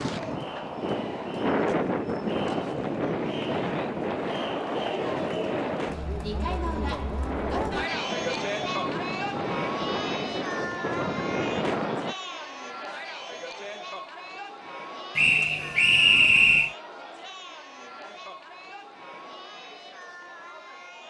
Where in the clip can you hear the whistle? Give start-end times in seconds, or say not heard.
15.2-16.8.